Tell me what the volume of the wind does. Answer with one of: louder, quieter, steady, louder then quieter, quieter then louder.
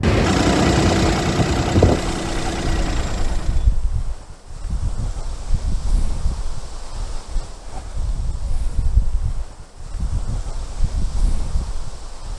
quieter.